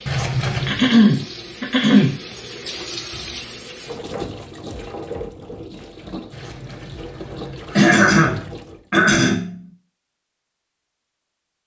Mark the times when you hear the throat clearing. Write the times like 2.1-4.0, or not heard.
0.7-2.1, 7.8-9.6.